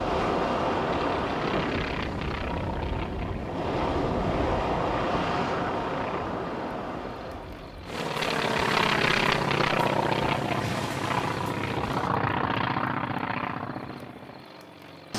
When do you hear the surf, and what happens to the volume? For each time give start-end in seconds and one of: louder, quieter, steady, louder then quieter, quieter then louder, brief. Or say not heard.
0.0-12.1 quieter.